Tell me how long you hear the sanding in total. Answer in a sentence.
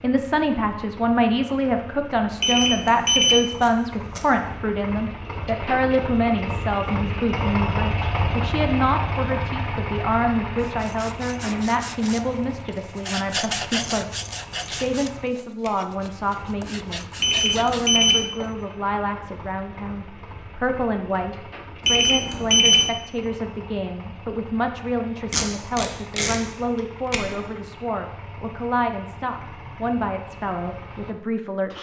The sanding can be heard for 8 seconds in total.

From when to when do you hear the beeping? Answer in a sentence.
The beeping can be heard from 2.4 to 3.4 s, from 17.2 to 18.2 s and from 21.9 to 22.9 s.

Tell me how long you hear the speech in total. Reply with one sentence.
You can hear the speech for 32 seconds altogether.